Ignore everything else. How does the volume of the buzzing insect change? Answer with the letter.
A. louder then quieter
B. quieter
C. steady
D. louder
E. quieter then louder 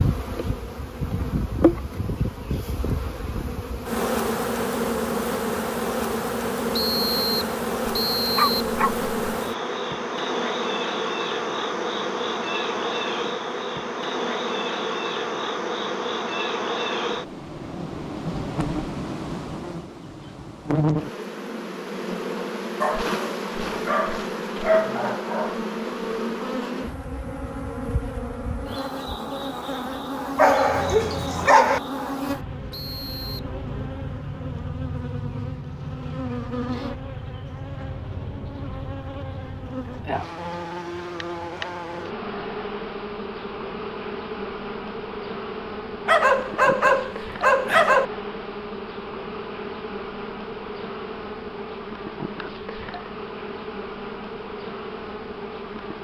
B.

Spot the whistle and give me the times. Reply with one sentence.
The whistle can be heard from 6.7 to 8.6 s and from 32.7 to 33.5 s.